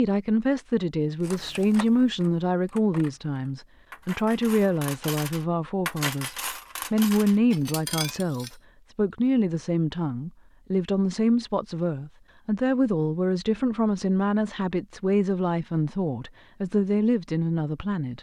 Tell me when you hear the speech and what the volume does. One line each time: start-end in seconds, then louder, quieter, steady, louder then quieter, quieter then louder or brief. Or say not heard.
0.0-18.1 steady.